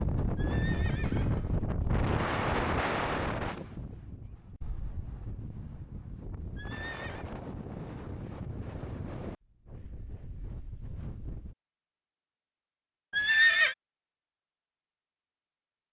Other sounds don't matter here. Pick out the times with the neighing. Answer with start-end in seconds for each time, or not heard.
0.3-1.6, 6.5-7.2, 13.1-13.8.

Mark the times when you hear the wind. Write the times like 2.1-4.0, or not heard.
0.0-11.6.